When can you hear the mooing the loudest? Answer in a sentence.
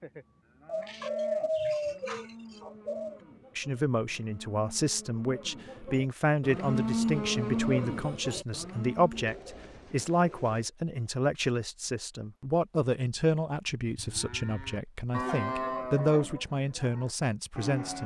The volume of the mooing peaks at 7 seconds.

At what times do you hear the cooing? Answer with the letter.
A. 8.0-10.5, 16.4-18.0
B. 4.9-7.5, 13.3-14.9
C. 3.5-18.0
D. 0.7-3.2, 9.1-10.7
D.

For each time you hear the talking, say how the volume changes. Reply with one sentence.
You can hear the talking from 3.5 to 18.0 s, at a steady volume.